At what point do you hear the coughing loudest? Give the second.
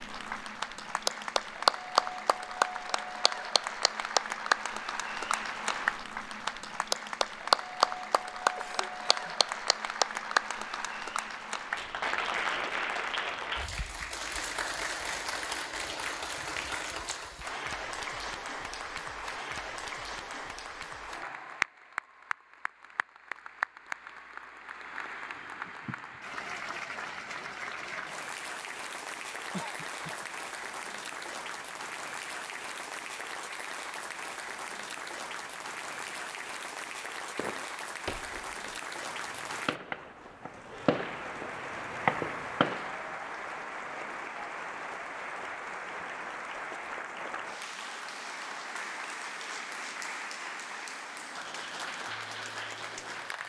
30 s.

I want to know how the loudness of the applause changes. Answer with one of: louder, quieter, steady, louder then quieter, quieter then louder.
quieter.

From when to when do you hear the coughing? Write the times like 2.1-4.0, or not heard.
8.6-9.3, 29.5-30.2.